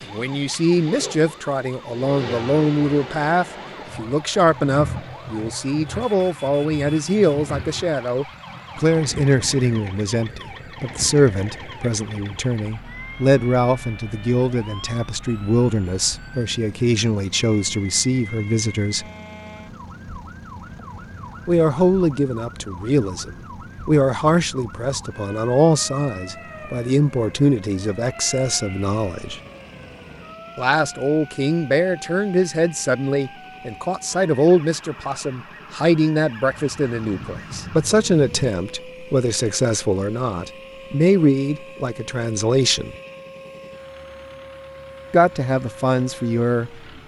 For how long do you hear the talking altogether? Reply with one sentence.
The talking can be heard for 41 seconds in total.